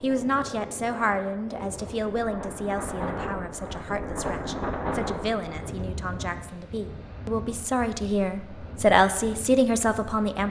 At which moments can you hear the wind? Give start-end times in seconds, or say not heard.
0.0-10.4.